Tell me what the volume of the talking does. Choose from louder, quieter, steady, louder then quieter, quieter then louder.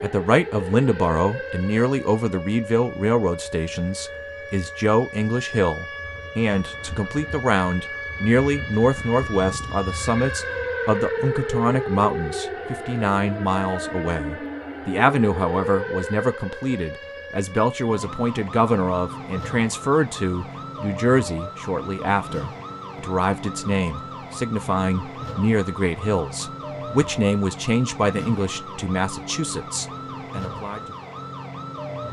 steady.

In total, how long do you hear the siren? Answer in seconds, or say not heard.
32 s.